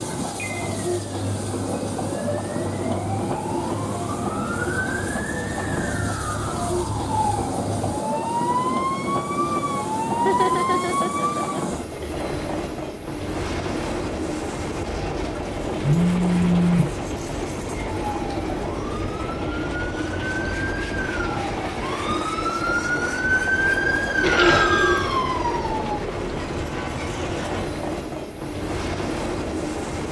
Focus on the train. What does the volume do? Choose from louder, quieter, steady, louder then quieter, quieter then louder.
steady.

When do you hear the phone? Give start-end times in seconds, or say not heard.
0.0-0.8, 15.8-16.9, 24.2-25.1.